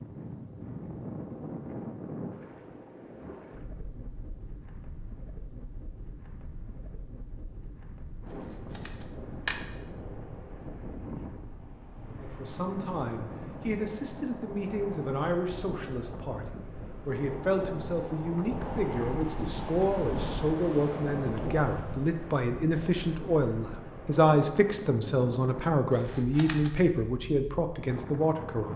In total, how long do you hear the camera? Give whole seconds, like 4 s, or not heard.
2 s.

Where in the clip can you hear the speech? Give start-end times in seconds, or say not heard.
12.1-28.7.